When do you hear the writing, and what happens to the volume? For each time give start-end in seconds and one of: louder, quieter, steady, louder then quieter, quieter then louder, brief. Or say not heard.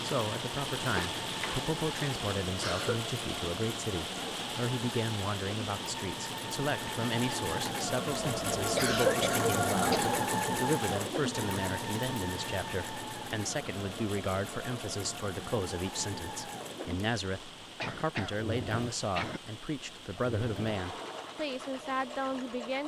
not heard.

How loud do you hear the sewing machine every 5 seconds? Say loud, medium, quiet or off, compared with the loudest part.
medium, loud, loud, medium, medium.